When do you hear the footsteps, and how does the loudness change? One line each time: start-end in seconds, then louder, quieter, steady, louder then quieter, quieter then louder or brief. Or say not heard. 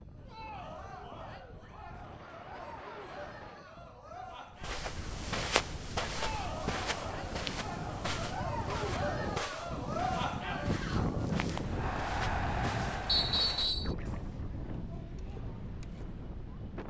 4.6-13.8 quieter.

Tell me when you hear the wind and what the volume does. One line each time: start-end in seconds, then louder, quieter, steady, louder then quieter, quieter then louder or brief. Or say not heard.
0.0-16.8 louder then quieter.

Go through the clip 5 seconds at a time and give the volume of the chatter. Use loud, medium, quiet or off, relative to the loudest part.
medium, loud, loud, quiet.